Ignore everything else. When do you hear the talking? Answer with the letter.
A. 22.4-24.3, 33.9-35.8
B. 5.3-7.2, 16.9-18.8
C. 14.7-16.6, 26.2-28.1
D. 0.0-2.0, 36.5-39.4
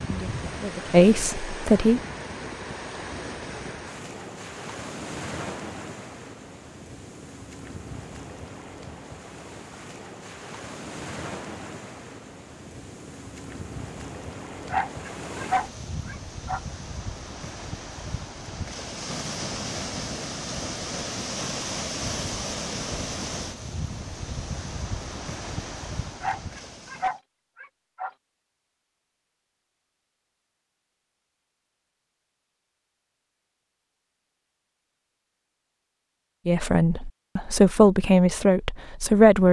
D.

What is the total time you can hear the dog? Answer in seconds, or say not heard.
4 s.